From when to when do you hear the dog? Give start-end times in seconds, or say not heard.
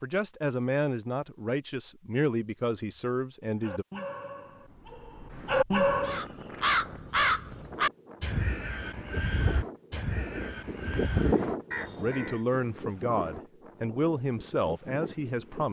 3.5-6.2.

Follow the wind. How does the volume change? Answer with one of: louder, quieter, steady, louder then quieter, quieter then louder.
louder then quieter.